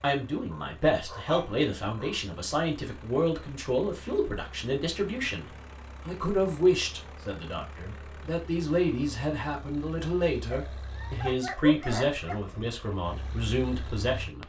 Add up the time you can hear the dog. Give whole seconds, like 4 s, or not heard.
4 s.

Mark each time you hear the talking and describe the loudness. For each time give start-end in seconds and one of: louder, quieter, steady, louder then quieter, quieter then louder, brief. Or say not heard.
0.0-14.4 steady.